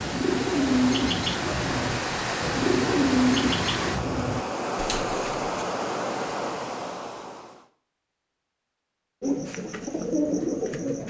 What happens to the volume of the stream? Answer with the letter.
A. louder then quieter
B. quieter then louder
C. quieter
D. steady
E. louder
D.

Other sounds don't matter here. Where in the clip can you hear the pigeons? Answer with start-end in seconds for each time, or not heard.
0.0-5.5, 9.2-11.0.